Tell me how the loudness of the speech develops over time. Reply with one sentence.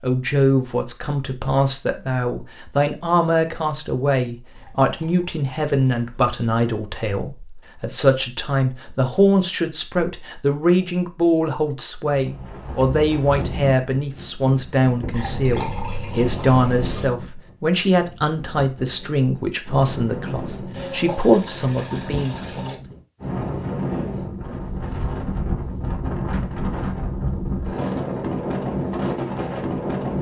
The loudness of the speech stays about the same.